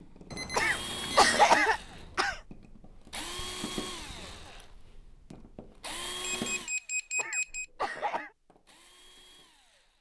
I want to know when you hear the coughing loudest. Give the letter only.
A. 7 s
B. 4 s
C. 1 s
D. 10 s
C.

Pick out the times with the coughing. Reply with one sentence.
You can hear the coughing from 0.6 to 2.4 s and from 7.2 to 8.3 s.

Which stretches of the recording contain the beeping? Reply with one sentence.
The beeping can be heard from 0.3 to 1.6 s and from 6.2 to 7.7 s.